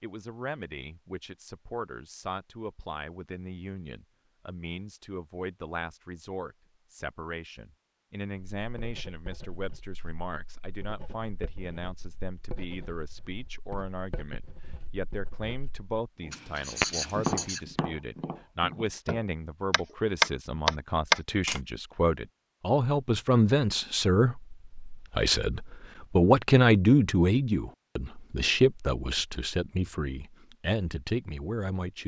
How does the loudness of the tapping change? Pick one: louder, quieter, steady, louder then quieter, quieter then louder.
quieter then louder.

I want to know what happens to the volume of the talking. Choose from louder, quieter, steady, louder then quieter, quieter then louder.
louder.